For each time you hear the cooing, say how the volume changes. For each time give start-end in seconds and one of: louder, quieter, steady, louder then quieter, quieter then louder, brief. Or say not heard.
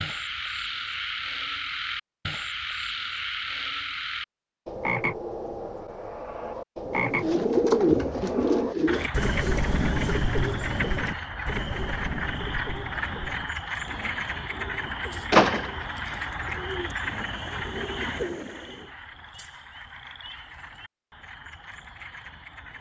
6.8-18.9 quieter then louder.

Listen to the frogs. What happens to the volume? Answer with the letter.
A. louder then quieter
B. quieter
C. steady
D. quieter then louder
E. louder
B.